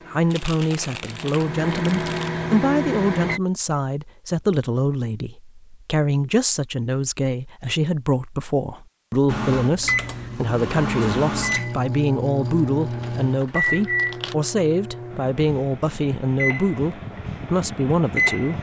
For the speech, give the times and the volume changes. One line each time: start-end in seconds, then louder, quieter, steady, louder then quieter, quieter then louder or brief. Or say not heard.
0.1-18.5 steady.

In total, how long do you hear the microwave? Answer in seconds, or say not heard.
13 s.